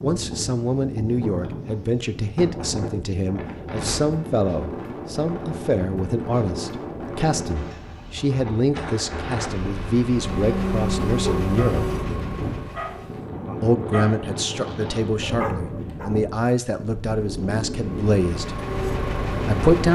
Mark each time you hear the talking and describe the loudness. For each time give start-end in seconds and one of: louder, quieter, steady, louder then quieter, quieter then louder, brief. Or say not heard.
0.0-11.8 steady
13.6-18.6 steady
19.3-19.8 brief.